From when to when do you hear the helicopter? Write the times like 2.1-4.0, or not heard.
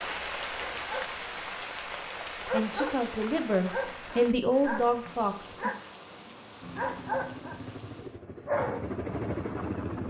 6.6-10.0.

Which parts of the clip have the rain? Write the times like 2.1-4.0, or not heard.
0.0-8.2.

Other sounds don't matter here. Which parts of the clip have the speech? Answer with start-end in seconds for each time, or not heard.
2.5-5.7.